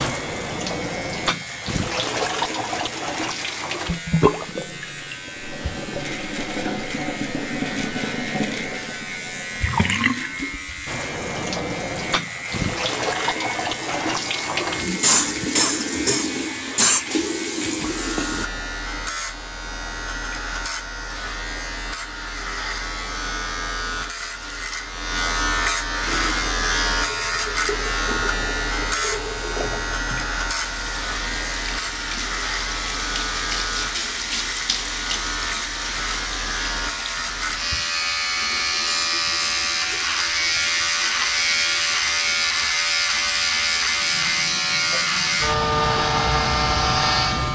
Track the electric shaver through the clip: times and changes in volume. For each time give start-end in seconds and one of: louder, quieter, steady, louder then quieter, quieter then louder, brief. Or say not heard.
0.0-47.5 louder.